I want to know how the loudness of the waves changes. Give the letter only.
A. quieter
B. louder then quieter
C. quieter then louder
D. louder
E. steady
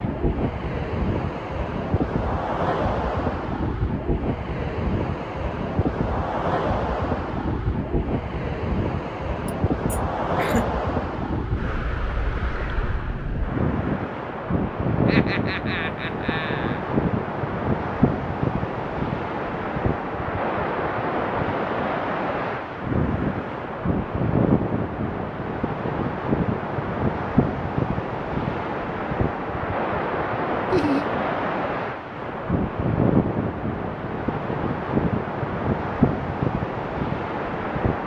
E.